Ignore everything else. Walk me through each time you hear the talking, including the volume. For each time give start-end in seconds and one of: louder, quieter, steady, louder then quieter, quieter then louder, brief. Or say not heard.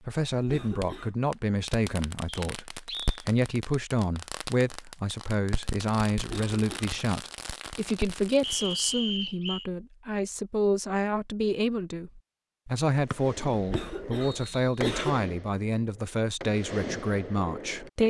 0.1-18.0 steady.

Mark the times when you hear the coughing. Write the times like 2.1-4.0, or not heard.
0.3-1.1, 6.2-6.8, 13.6-15.2.